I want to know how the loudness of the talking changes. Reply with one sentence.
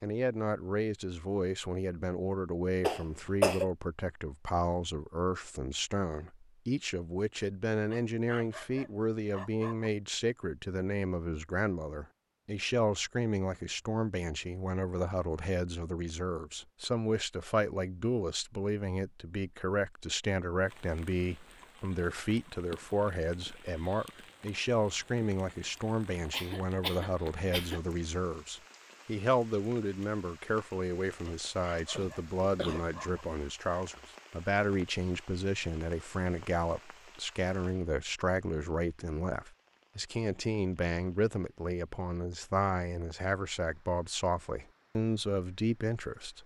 The loudness of the talking stays about the same.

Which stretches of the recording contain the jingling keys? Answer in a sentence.
The jingling keys can't be heard in this clip.